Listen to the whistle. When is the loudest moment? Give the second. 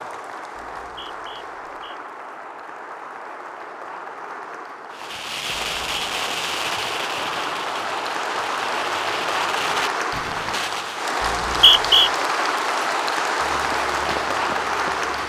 12 s.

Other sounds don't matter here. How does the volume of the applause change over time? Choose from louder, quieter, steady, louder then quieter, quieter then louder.
louder.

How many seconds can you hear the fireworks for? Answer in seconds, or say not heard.
6 s.